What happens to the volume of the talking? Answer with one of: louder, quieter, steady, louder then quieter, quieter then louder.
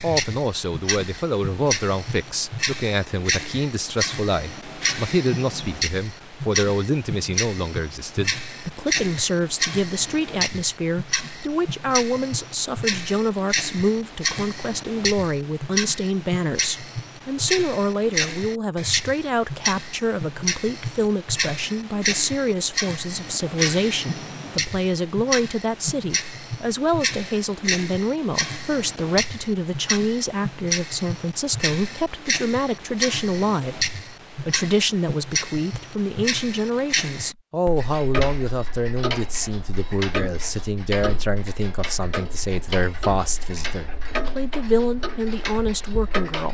steady.